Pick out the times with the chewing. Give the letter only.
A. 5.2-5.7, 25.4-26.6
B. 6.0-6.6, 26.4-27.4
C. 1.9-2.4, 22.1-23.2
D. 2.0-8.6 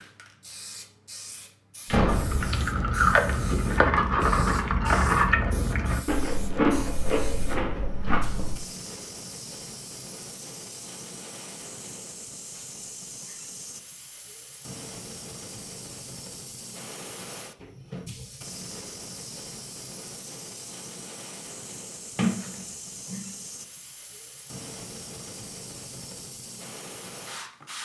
D.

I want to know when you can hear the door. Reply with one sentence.
The door can be heard from 1.9 to 2.4 s and from 22.1 to 23.2 s.